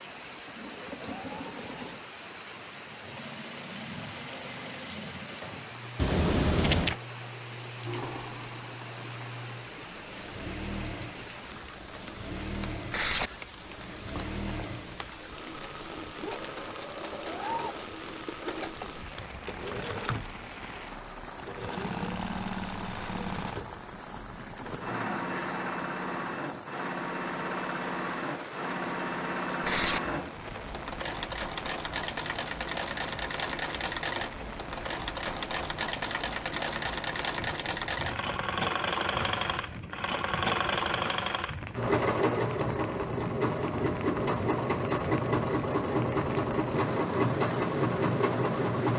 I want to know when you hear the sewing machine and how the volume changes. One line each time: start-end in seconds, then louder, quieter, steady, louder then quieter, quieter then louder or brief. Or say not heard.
0.0-48.9 louder.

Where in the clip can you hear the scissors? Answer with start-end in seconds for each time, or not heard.
6.0-7.0.